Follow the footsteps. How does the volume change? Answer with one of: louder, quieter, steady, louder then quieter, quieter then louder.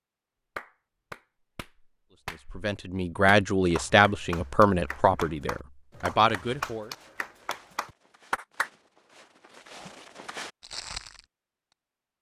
louder.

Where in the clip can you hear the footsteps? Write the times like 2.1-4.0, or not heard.
6.3-11.2.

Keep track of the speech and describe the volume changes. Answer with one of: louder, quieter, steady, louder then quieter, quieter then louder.
quieter then louder.